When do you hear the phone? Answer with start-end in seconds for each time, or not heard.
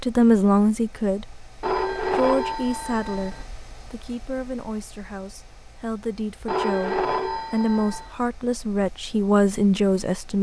1.6-3.5, 6.5-8.1.